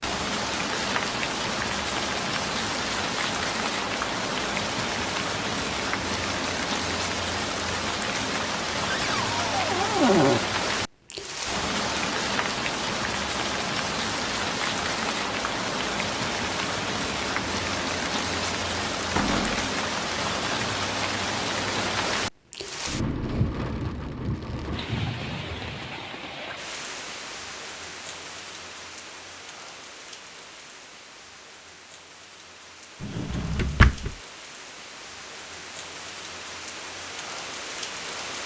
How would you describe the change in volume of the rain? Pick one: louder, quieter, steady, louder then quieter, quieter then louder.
quieter.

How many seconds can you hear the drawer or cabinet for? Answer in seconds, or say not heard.
3 s.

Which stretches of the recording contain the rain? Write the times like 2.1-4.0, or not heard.
0.0-38.4.